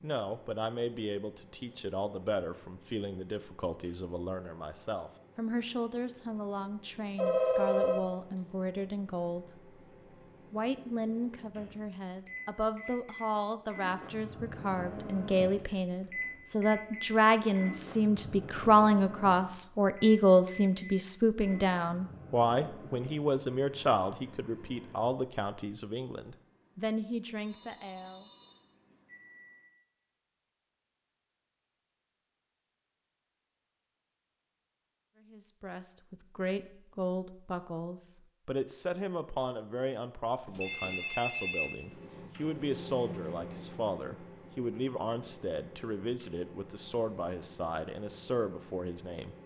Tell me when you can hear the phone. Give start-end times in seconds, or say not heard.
7.2-8.4, 27.4-28.9, 40.5-42.5.